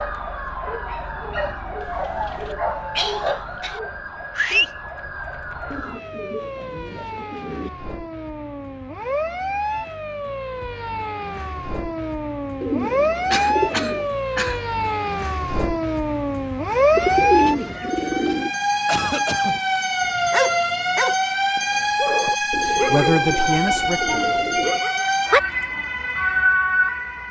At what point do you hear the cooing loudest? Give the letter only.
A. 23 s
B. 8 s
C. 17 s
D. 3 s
C.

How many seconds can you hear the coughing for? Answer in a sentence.
The coughing can be heard for 4 seconds in total.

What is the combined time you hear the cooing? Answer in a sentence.
You can hear the cooing for 9 seconds altogether.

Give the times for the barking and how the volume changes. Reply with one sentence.
The barking can be heard from 0.0 to 4.7 s, getting louder then quieter; and from 20.1 to 25.9 s, getting quieter.